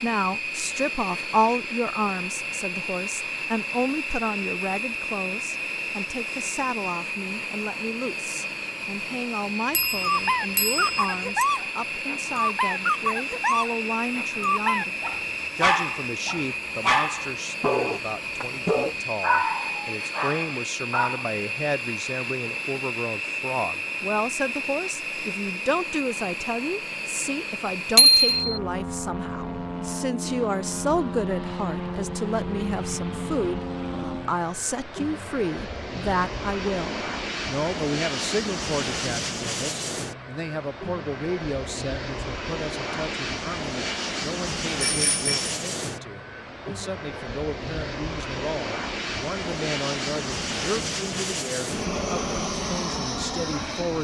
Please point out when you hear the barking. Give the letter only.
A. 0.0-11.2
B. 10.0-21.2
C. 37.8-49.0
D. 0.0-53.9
B.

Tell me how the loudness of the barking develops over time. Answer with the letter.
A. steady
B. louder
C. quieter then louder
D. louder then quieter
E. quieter
A.